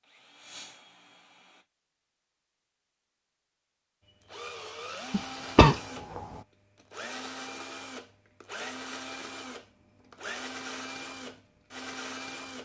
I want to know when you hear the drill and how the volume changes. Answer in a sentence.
You can hear the drill briefly from 0.0 to 1.6 s; and from 4.0 to 12.6 s, at a steady volume.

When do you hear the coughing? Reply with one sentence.
The coughing can be heard from 5.1 to 6.2 s.